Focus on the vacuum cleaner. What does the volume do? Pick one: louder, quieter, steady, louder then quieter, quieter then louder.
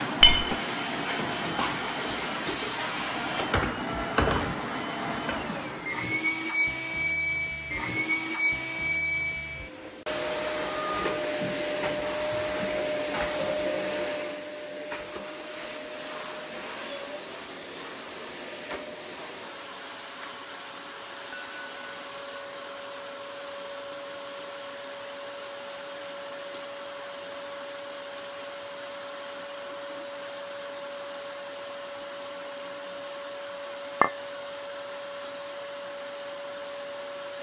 quieter.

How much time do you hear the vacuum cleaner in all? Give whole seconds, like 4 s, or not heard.
37 s.